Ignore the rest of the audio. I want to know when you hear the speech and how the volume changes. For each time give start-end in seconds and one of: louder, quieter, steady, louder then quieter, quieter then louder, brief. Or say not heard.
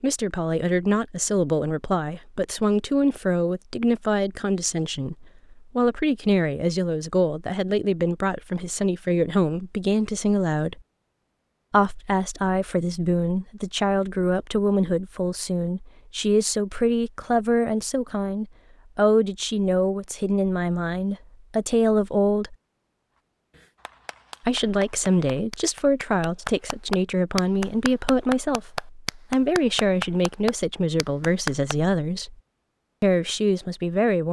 0.0-10.8 steady
11.7-22.6 steady
24.4-32.4 steady
33.0-34.2 brief.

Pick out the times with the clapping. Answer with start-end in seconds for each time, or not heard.
23.5-31.8.